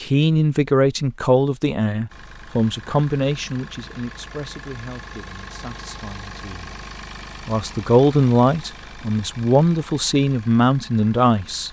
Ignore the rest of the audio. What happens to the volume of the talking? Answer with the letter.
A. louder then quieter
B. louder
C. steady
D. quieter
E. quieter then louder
E.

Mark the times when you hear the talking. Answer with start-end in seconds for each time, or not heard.
0.0-6.8, 7.5-11.6.